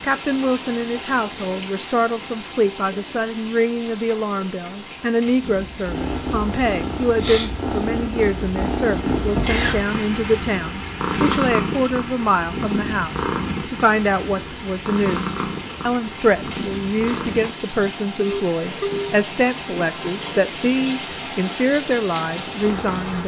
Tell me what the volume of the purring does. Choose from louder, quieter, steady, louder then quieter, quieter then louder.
quieter.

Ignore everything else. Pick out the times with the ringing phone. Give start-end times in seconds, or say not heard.
18.1-19.2.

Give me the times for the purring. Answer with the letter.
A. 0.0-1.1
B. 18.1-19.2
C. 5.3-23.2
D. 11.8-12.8
C.